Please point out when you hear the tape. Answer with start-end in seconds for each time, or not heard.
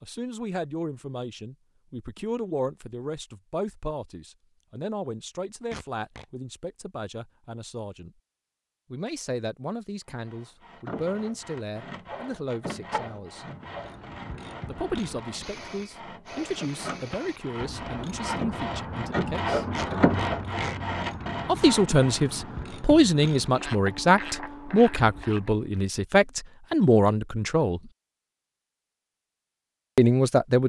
5.7-6.2, 19.8-20.8.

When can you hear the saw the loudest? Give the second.
20 s.